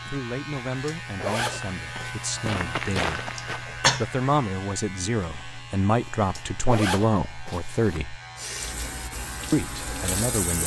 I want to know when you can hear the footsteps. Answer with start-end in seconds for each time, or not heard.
1.6-3.6.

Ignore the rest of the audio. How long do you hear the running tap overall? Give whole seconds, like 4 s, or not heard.
2 s.